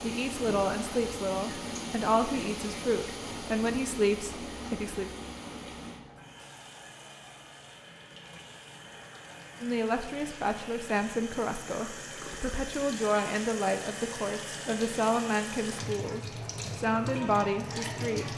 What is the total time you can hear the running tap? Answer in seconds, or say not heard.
18 s.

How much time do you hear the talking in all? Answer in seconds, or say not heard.
14 s.